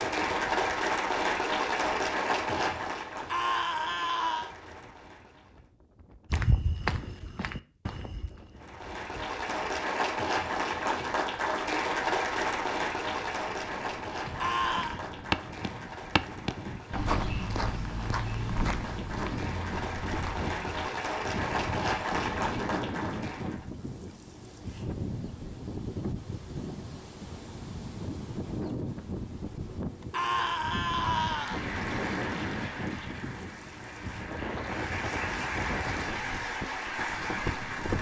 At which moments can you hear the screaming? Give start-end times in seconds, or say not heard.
3.2-4.5, 14.4-15.0, 30.1-31.6.